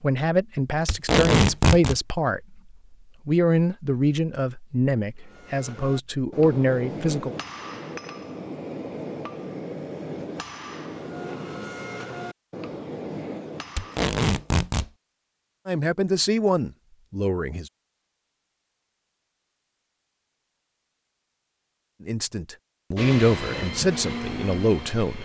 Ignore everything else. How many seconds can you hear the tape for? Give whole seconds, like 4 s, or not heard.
2 s.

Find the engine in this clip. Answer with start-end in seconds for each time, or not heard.
22.9-25.2.